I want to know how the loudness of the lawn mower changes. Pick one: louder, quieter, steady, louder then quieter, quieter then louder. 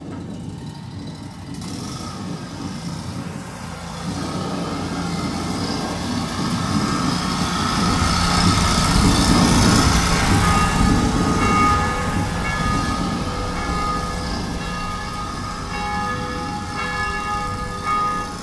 louder then quieter.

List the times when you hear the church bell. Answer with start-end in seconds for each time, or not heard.
10.4-18.3.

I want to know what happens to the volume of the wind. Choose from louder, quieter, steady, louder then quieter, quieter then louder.
louder then quieter.